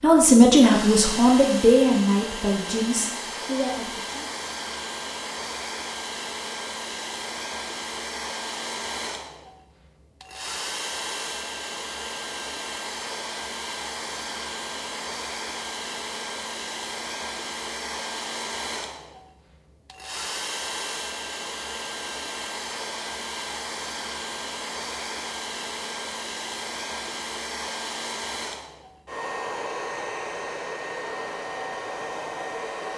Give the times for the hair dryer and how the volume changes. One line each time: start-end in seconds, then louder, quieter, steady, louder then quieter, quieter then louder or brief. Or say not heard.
0.0-32.9 steady.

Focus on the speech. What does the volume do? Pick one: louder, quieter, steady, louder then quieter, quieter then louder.
quieter.